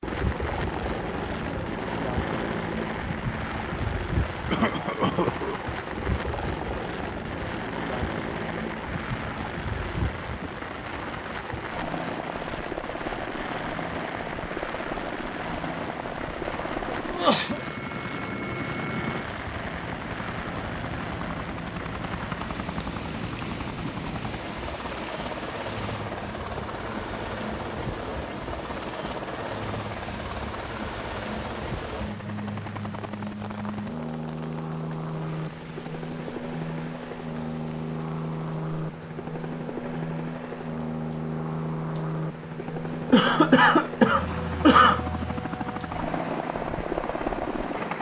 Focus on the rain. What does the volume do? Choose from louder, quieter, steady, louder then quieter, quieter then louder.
quieter.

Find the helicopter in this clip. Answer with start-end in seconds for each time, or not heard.
0.0-47.9.